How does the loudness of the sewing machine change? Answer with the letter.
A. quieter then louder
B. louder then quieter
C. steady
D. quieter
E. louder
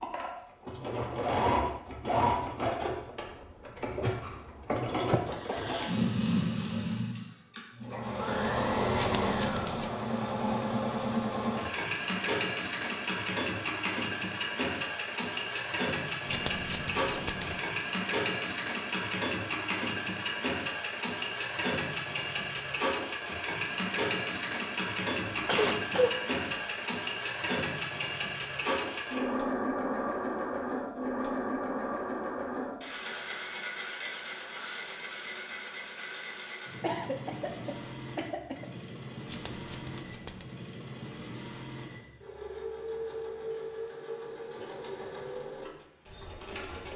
D.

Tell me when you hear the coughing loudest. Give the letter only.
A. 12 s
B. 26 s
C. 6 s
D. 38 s
B.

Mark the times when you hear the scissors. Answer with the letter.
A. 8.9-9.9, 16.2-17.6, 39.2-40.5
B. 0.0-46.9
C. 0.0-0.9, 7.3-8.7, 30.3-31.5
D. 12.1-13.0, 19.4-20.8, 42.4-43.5
A.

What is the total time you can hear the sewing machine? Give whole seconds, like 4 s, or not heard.
47 s.